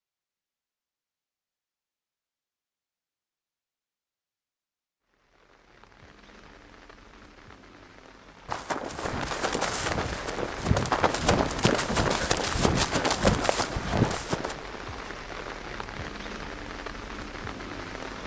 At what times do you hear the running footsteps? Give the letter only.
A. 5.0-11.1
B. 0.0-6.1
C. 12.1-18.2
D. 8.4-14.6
D.